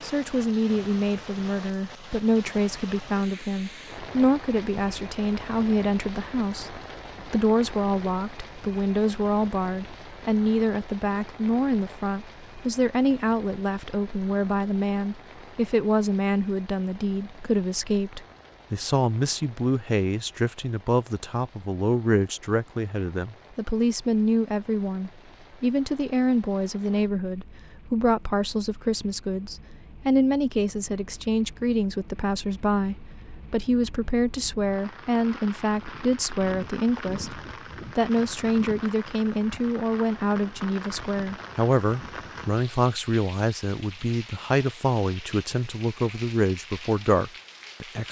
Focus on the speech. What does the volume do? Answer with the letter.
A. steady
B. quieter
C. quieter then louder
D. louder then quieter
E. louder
A.